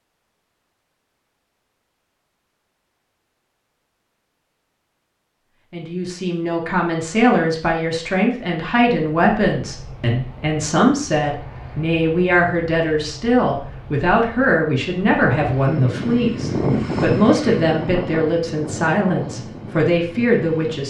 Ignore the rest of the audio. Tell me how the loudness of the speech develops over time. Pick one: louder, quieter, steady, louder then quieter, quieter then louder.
steady.